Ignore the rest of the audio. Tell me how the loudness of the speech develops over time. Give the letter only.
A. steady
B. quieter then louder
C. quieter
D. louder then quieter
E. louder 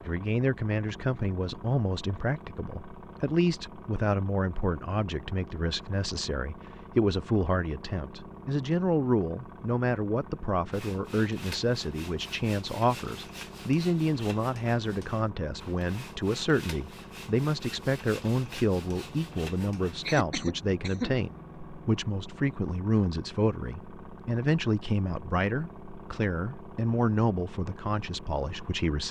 A.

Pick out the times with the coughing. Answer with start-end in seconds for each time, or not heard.
20.1-21.1.